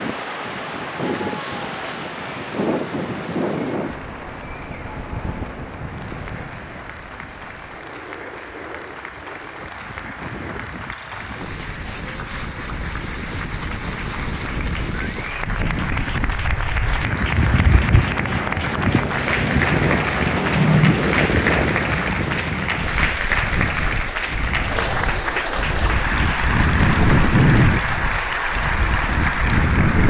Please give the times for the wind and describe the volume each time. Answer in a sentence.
The wind can be heard from 0.0 to 30.0 s, getting quieter then louder.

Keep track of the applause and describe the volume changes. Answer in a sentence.
The loudness of the applause goes up.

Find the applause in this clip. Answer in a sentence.
The applause can be heard from 0.0 to 30.0 s.